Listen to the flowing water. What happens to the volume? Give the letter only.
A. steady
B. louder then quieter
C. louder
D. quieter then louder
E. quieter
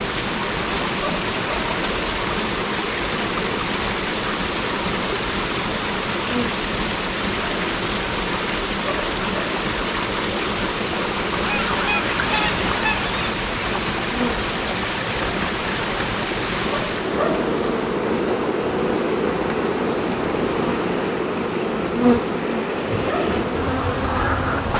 E.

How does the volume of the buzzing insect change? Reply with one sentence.
The volume of the buzzing insect goes up.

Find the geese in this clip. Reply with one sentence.
The geese can be heard from 11.3 to 13.3 s.